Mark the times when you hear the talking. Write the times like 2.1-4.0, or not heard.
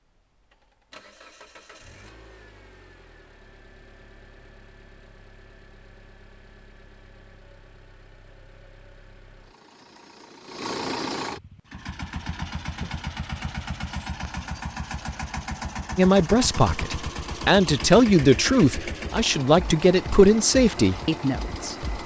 15.9-22.0.